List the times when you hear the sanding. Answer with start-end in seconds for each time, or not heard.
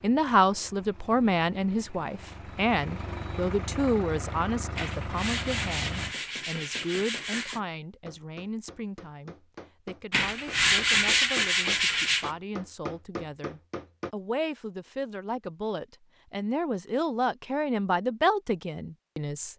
4.8-7.6, 10.1-12.3.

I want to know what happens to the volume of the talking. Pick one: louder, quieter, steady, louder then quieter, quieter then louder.
quieter then louder.